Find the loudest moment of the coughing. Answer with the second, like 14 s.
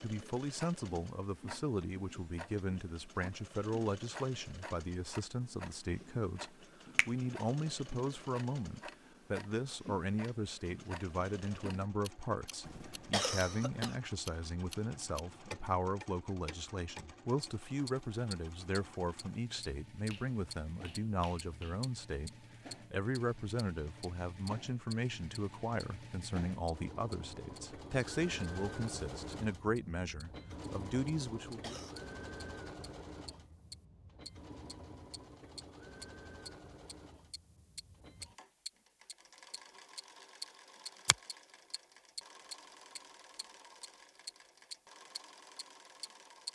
13 s.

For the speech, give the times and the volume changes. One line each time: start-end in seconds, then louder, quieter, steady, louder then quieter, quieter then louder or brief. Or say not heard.
0.0-31.8 steady.